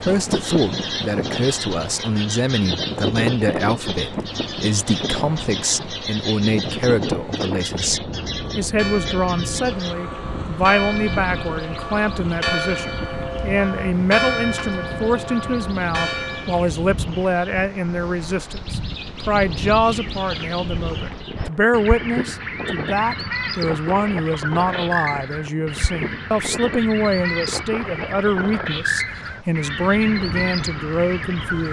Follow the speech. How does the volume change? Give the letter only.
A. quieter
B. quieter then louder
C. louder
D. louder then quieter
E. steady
E.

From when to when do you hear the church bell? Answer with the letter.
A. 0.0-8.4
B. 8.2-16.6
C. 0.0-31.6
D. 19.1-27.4
B.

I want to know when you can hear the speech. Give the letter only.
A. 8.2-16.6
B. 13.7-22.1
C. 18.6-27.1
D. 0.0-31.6
D.